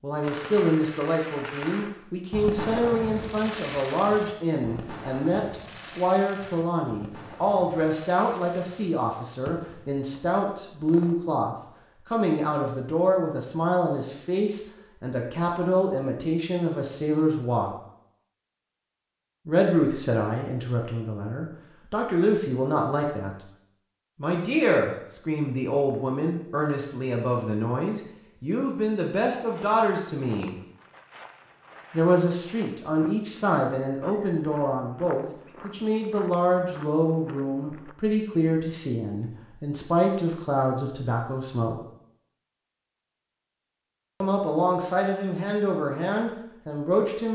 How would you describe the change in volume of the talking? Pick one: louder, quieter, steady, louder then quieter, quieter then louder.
steady.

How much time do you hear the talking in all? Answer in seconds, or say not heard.
41 s.